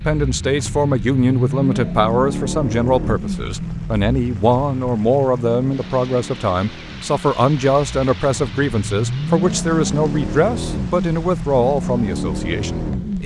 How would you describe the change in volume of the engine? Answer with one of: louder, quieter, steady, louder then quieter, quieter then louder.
quieter then louder.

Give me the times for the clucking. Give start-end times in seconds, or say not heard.
not heard.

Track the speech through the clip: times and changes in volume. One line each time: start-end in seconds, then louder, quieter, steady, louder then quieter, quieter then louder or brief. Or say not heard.
0.0-13.2 steady.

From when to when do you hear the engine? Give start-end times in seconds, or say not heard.
0.0-13.2.